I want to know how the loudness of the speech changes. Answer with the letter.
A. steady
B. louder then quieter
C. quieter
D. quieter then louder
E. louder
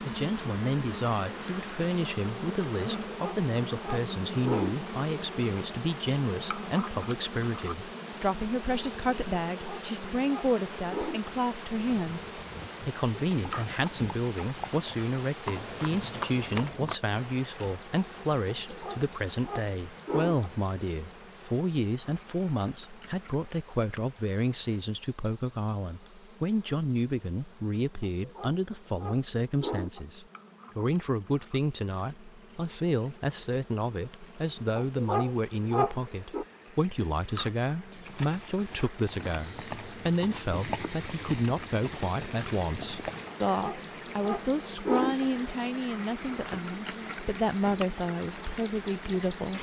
A.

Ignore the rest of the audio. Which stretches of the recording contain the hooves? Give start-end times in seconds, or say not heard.
11.8-16.9, 37.9-43.4.